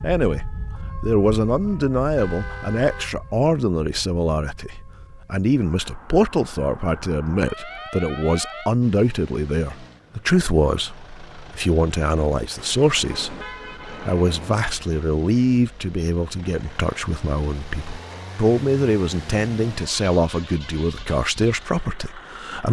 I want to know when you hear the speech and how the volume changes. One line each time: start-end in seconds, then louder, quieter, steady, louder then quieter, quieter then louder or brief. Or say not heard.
0.0-22.6 steady.